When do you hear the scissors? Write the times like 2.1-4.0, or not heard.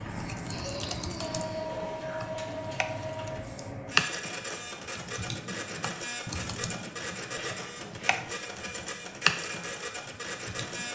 not heard.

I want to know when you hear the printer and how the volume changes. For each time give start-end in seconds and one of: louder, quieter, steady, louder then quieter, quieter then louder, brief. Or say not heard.
0.0-10.8 steady.